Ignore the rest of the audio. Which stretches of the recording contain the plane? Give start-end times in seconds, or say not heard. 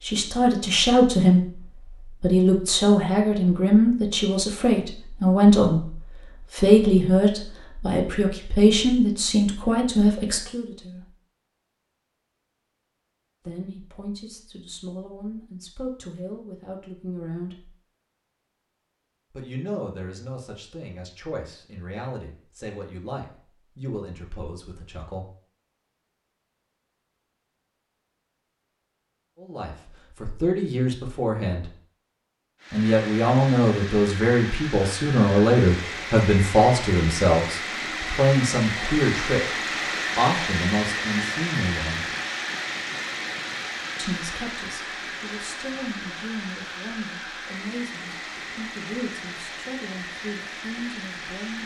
32.6-51.6.